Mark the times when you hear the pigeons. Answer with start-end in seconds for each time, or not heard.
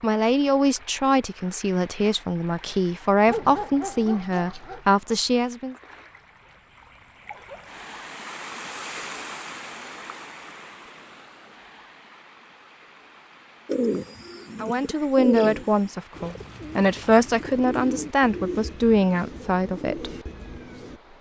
13.7-21.0.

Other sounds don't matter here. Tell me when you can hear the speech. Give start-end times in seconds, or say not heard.
0.0-5.8, 14.6-20.1.